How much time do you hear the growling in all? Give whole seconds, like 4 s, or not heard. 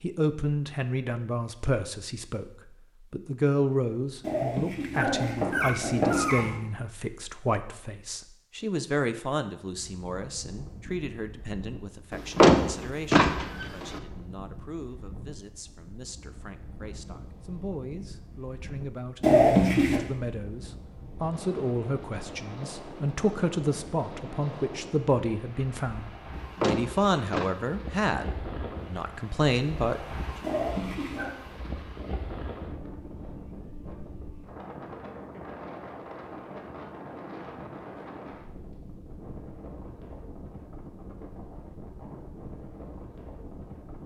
4 s.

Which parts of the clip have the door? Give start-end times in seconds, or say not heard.
12.1-14.0, 26.4-27.5.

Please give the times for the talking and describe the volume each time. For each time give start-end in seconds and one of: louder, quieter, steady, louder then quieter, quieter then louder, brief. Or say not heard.
0.0-2.5 brief
3.1-30.0 quieter then louder.